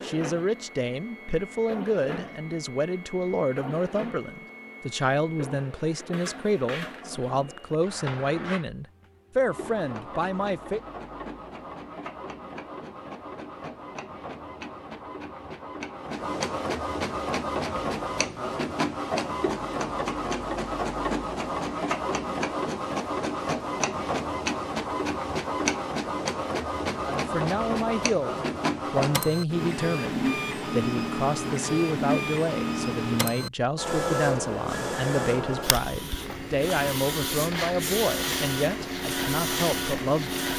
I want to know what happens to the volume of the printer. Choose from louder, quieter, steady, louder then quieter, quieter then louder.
louder.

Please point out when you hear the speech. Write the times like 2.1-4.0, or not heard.
0.0-10.8, 27.1-40.5.